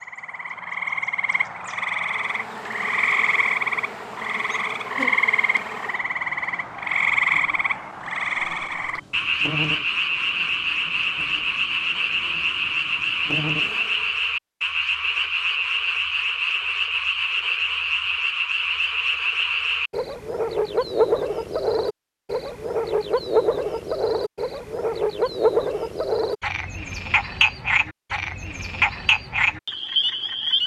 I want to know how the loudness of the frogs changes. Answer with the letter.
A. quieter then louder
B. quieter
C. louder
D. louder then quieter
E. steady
E.